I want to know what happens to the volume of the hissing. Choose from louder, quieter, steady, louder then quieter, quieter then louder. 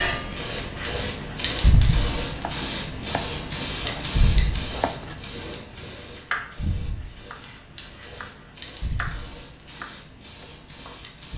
quieter.